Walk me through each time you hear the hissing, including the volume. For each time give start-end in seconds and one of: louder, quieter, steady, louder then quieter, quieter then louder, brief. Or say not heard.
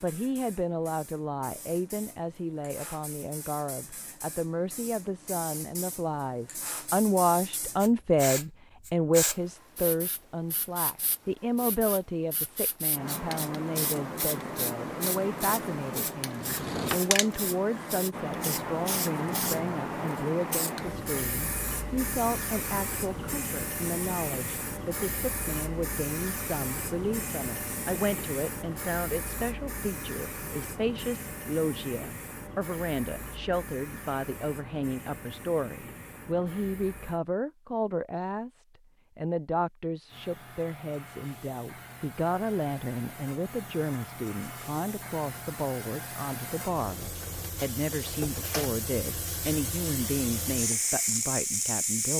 0.0-37.2 louder then quieter
40.0-52.1 louder.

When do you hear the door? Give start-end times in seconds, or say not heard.
16.4-17.0.